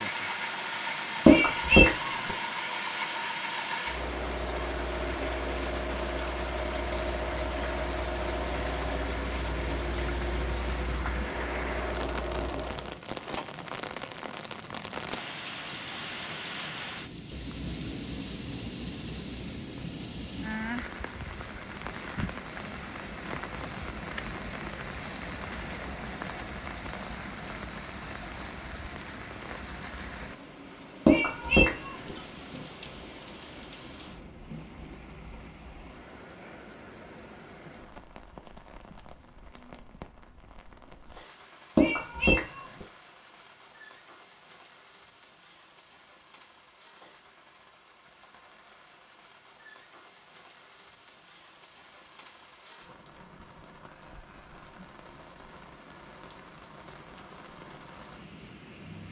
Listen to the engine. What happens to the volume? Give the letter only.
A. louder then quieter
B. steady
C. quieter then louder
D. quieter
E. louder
B.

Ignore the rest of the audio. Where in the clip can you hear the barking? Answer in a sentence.
The barking can't be heard in this clip.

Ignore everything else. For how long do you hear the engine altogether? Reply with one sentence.
The engine can be heard for 13 seconds in total.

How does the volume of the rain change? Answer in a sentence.
The loudness of the rain goes down.